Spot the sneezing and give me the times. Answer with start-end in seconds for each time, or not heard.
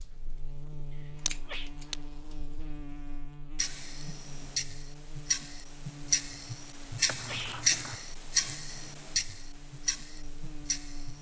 0.9-1.7, 7.2-7.7.